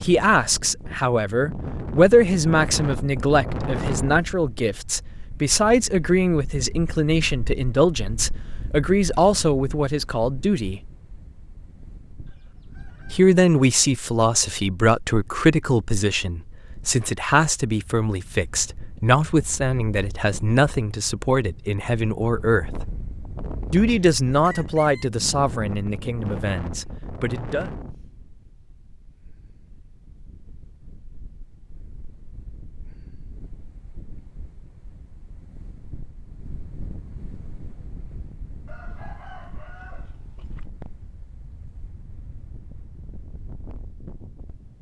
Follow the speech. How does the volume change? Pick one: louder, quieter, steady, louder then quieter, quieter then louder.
steady.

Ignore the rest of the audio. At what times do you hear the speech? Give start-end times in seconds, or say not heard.
0.0-10.8, 13.1-22.9, 23.7-27.7.